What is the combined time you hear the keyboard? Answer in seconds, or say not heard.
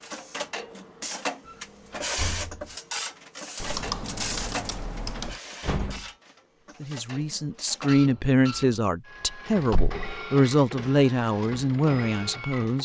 2 s.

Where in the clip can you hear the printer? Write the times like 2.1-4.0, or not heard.
0.0-12.8.